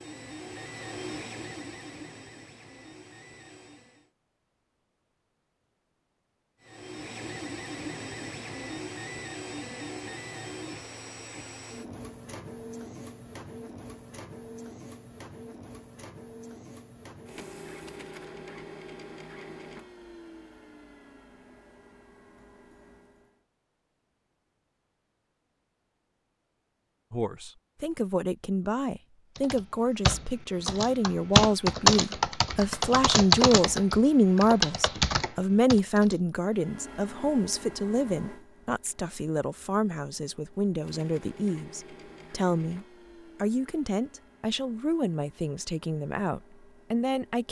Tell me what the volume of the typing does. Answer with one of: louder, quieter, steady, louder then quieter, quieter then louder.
louder then quieter.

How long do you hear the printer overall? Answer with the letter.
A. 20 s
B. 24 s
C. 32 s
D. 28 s
C.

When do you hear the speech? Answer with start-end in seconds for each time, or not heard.
27.1-47.4.